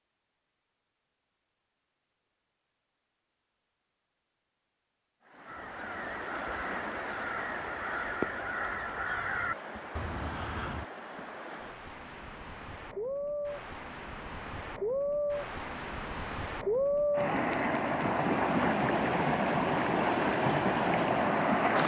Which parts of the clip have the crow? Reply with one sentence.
The crow can be heard from 5.5 to 10.8 s.